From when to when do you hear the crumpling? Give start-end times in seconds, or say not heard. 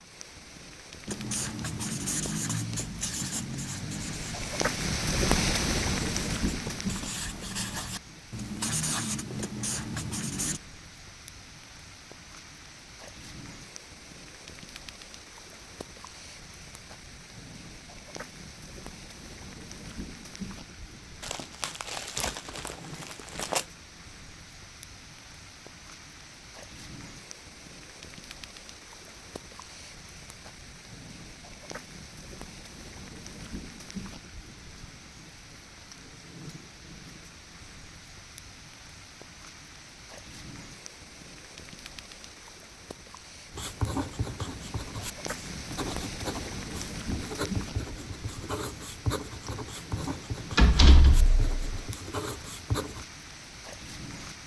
21.2-23.6.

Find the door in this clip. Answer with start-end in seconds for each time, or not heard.
50.5-51.8.